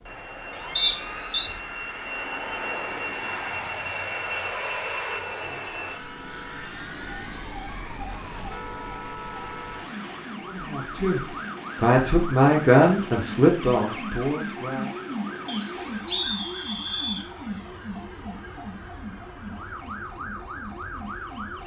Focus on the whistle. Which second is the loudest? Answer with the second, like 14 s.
1 s.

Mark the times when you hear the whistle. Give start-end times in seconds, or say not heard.
0.8-1.5, 15.4-17.3.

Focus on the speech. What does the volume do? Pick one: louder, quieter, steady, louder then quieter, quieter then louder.
louder then quieter.